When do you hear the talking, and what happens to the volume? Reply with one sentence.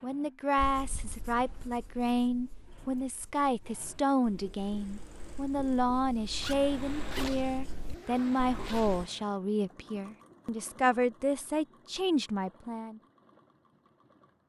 The talking can be heard from 0.0 to 13.0 s, at a steady volume.